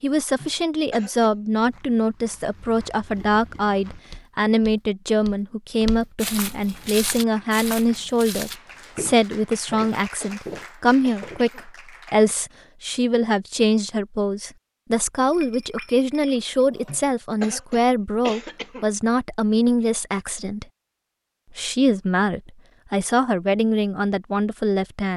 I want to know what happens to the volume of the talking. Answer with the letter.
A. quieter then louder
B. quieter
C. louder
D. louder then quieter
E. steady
E.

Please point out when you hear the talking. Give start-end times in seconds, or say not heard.
0.0-20.6, 21.6-25.1.